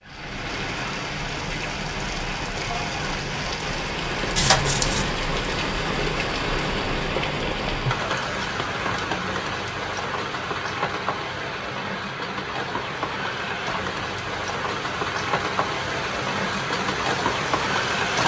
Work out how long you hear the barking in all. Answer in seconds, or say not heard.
not heard.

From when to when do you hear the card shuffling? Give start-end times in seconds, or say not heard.
4.3-5.1.